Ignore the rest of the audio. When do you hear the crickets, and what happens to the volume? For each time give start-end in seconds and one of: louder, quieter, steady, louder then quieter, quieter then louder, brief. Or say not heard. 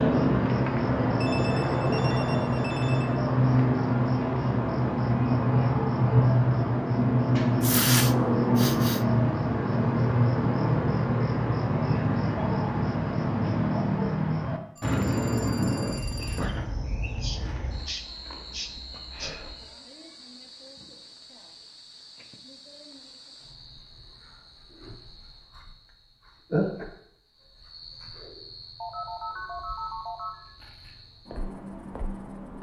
0.0-32.5 quieter then louder.